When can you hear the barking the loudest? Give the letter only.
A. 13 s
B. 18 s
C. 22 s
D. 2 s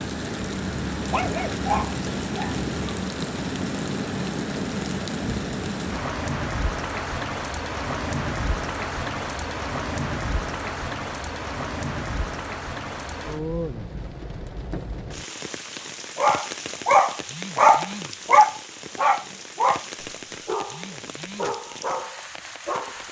B.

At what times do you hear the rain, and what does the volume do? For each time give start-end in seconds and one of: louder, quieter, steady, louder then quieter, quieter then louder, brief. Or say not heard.
0.0-23.0 quieter.